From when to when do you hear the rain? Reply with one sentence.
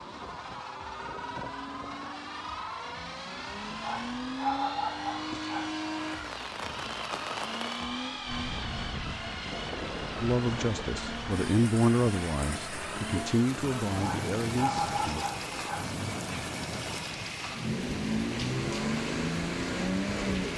The rain can be heard from 6.0 to 20.5 s.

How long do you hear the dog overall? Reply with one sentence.
The dog can be heard for 4 seconds in total.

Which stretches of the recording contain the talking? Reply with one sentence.
The talking can be heard from 10.2 to 15.2 s.